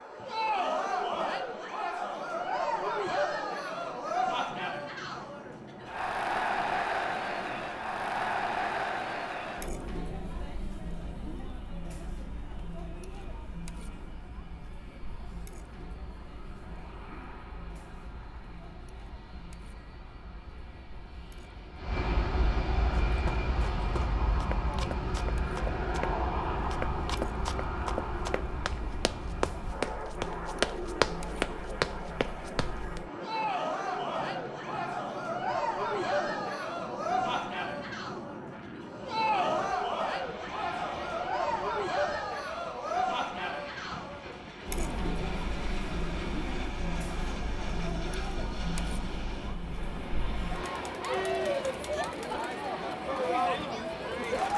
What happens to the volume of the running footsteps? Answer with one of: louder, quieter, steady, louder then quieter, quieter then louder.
louder.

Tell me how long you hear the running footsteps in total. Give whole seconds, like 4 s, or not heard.
10 s.